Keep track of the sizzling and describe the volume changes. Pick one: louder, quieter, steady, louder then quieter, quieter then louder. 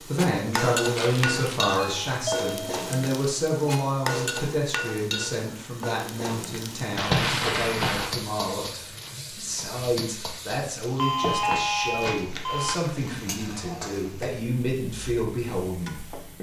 quieter.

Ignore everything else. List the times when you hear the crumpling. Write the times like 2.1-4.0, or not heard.
0.9-1.6, 7.0-8.2, 12.0-13.4.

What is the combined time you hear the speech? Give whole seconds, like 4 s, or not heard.
16 s.